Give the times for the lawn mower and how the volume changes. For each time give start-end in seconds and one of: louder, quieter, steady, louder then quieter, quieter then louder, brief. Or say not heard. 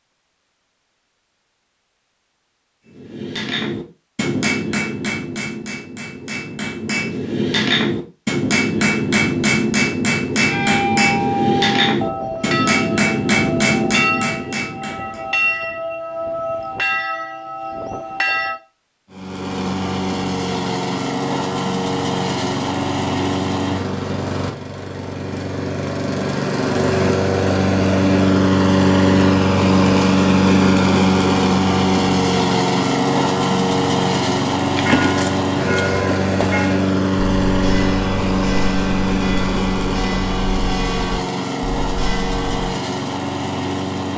19.1-44.1 louder then quieter.